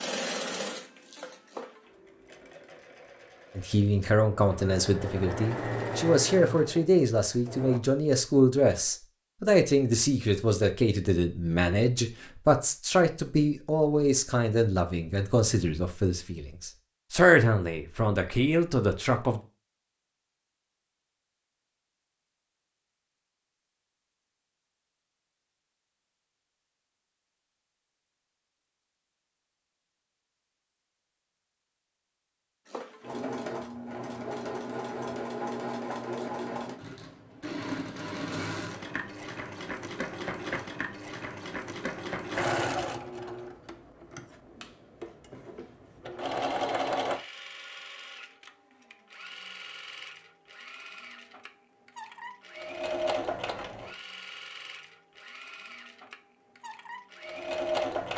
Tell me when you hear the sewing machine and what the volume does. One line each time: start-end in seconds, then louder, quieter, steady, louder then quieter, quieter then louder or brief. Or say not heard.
0.0-7.8 quieter then louder
32.6-58.1 quieter then louder.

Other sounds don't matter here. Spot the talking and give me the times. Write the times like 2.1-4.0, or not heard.
3.5-19.4.